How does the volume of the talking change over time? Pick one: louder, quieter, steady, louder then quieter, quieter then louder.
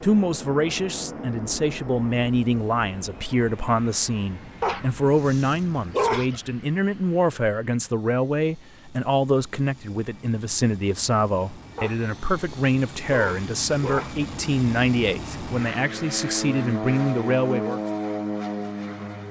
steady.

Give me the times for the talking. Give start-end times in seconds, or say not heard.
0.0-17.8.